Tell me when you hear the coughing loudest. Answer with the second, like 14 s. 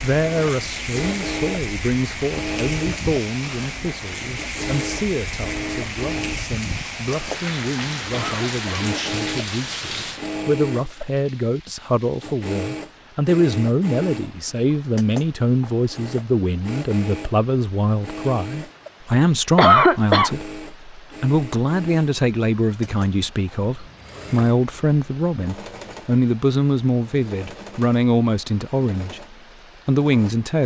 20 s.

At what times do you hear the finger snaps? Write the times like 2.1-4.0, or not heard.
not heard.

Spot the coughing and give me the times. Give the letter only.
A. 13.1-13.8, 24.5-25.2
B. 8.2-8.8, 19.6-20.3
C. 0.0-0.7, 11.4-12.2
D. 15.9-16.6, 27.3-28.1
B.